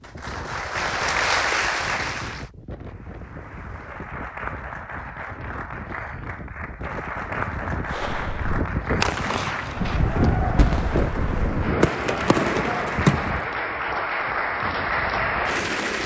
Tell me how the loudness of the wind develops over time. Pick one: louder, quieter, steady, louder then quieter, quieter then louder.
louder then quieter.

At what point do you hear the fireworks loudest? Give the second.
13 s.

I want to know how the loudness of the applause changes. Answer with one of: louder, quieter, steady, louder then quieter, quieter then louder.
quieter then louder.